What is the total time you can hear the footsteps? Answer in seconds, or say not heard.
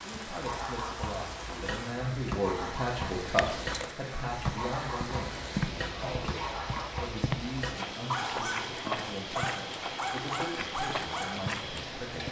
8 s.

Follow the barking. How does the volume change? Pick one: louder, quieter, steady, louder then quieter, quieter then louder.
steady.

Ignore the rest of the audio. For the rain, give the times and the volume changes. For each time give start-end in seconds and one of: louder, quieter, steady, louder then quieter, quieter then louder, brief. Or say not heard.
0.0-12.2 steady.